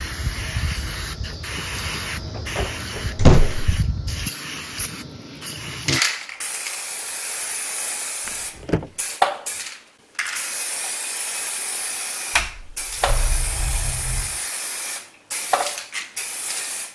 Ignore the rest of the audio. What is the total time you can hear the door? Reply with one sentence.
The door can be heard for 4 seconds in total.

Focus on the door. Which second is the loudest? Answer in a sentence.
The loudest moment of the door is at 3 seconds.